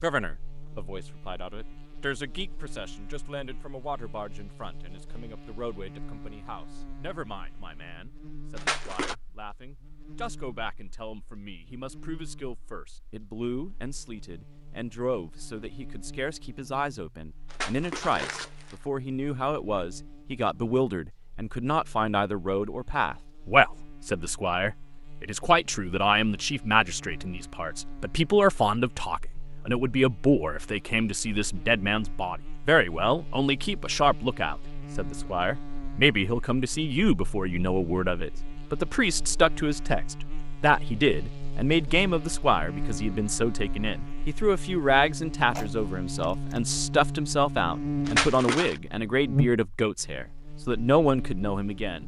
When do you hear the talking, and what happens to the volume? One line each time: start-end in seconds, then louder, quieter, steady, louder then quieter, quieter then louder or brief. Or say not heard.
0.0-52.0 louder.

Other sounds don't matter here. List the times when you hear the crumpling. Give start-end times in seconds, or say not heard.
8.6-9.2, 17.5-18.8, 48.0-48.8.